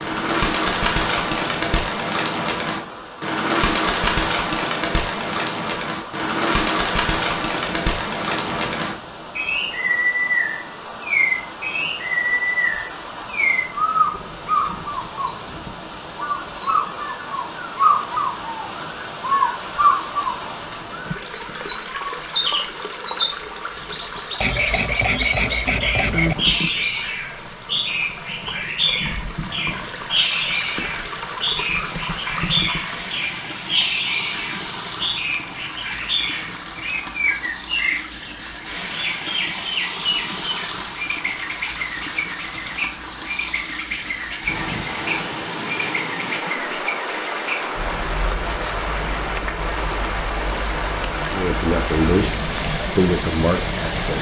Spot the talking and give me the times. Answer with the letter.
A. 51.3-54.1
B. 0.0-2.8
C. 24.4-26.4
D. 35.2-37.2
A.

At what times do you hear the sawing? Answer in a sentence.
You can hear the sawing from 24.4 to 26.4 s.